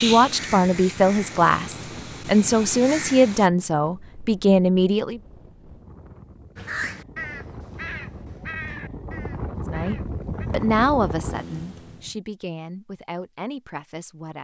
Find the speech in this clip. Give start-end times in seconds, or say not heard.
0.0-5.2, 9.7-14.3.